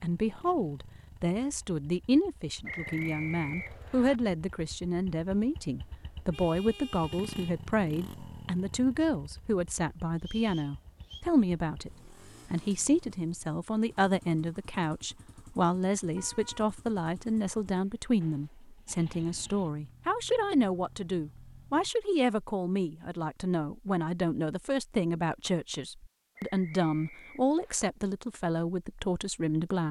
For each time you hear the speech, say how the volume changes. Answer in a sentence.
You can hear the speech from 0.0 to 29.8 s, at a steady volume.